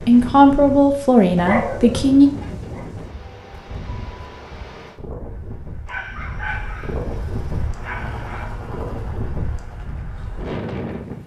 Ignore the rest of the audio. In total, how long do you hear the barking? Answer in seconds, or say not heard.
4 s.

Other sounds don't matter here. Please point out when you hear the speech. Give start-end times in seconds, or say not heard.
0.1-2.3.